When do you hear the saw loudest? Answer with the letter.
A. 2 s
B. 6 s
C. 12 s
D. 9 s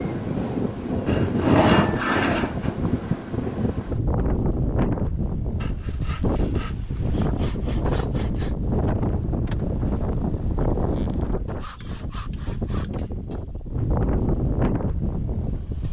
A.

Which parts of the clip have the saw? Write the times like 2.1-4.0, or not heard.
1.1-2.8, 5.5-8.6, 11.4-13.1.